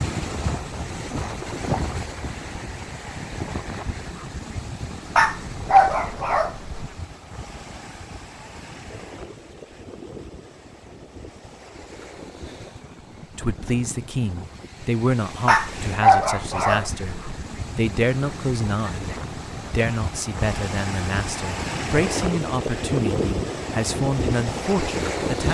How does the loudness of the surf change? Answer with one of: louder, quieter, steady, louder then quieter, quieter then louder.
quieter then louder.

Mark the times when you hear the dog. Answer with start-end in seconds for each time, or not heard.
5.2-6.8, 15.4-17.4.